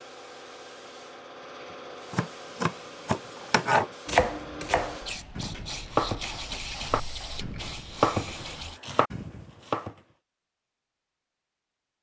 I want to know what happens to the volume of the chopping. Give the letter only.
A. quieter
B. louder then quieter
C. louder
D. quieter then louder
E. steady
A.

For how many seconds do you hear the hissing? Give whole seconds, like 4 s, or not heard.
9 s.